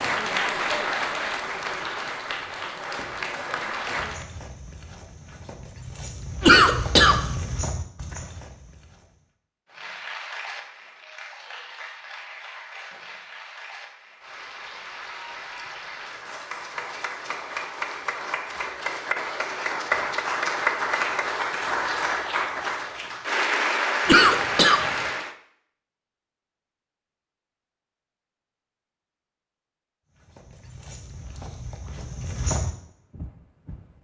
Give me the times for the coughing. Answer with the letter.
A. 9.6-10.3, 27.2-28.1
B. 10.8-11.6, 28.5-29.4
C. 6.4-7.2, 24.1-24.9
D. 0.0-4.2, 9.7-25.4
C.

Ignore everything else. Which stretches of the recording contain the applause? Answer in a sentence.
You can hear the applause from 0.0 to 4.2 s and from 9.7 to 25.4 s.